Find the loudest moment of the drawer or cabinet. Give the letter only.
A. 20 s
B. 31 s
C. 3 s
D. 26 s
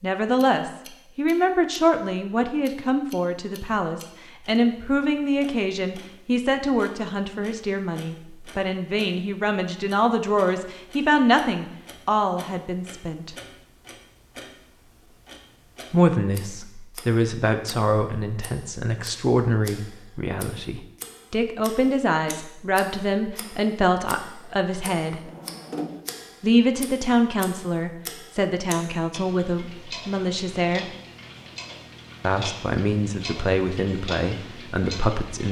D.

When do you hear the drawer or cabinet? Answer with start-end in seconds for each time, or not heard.
24.4-26.0.